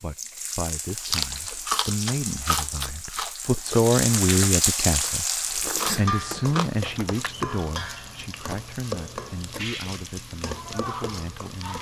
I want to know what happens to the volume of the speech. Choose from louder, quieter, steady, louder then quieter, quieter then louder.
louder then quieter.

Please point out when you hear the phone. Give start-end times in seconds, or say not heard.
not heard.